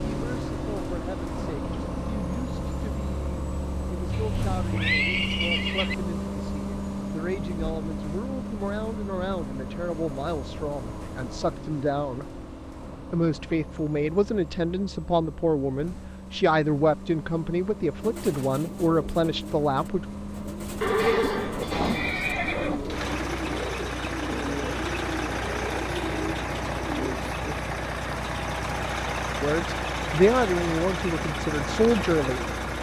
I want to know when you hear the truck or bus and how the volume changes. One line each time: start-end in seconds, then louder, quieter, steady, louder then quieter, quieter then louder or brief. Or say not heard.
0.0-32.7 quieter then louder.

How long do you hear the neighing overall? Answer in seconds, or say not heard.
4 s.